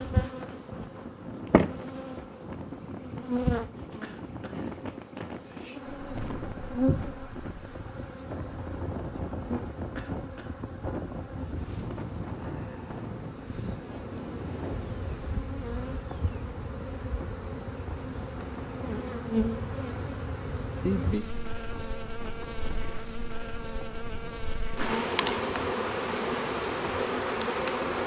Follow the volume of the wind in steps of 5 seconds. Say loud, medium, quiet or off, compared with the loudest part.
loud, loud, loud, medium, medium, medium.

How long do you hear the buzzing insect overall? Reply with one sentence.
You can hear the buzzing insect for 28 seconds altogether.